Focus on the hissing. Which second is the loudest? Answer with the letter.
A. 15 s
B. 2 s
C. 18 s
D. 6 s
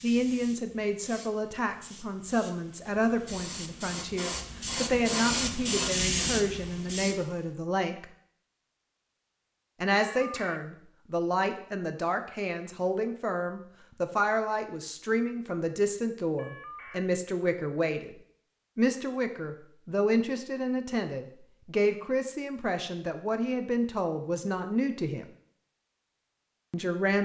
D.